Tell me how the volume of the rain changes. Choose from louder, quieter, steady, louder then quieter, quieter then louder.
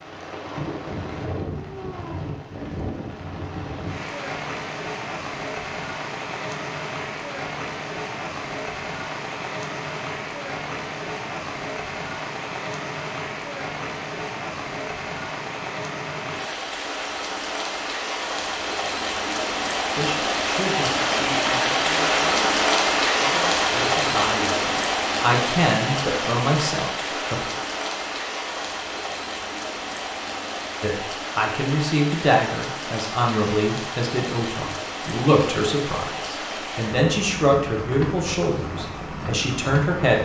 louder then quieter.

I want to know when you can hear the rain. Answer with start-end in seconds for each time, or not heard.
0.0-40.2.